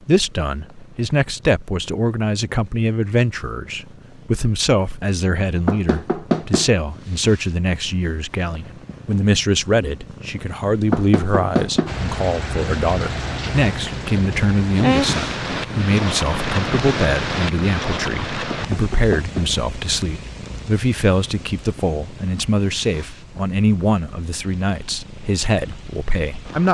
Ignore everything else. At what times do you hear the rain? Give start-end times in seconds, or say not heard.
11.8-26.6.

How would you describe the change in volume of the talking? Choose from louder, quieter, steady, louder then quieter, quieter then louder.
steady.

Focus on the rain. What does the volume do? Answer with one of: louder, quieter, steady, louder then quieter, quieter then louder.
quieter.